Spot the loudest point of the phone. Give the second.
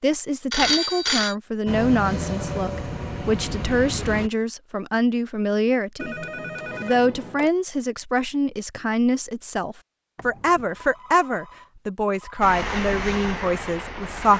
1 s.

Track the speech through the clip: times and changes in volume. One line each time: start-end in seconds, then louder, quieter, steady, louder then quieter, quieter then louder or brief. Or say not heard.
0.0-14.3 steady.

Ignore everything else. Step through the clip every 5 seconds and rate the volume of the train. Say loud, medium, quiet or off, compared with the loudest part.
loud, off, loud.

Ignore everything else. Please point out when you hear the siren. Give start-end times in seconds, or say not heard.
not heard.